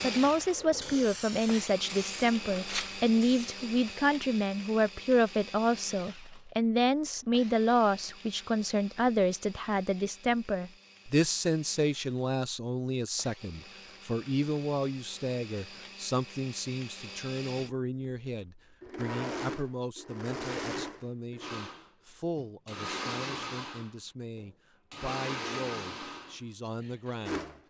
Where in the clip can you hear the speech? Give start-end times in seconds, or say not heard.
0.0-27.6.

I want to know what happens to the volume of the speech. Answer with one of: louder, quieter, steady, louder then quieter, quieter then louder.
quieter.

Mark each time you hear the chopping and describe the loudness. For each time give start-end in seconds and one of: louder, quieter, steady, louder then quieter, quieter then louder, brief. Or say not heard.
not heard.